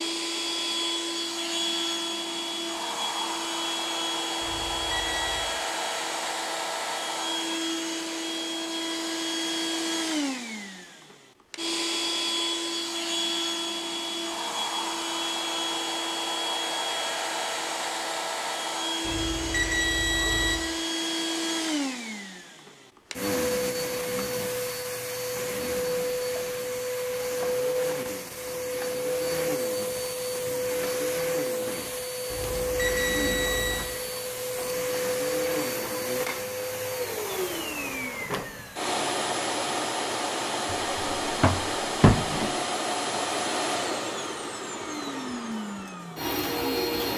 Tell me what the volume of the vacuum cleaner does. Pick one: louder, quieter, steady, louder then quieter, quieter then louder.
steady.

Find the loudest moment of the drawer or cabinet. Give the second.
42 s.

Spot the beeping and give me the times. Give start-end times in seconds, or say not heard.
4.4-5.5, 19.0-20.6, 32.3-33.9.